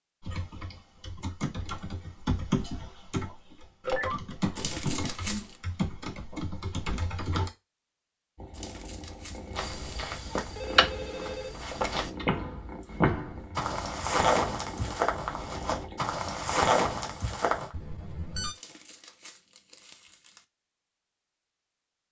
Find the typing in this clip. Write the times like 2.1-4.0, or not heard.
0.2-7.5.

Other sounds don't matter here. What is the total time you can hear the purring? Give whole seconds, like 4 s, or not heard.
8 s.